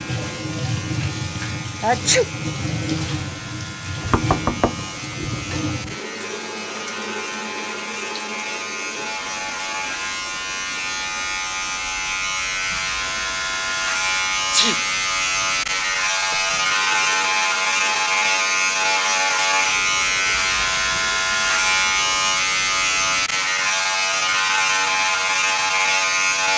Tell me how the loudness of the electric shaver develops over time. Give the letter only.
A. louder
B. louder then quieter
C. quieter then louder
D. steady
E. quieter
A.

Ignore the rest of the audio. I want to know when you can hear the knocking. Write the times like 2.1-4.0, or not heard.
4.1-5.5, 16.3-17.0.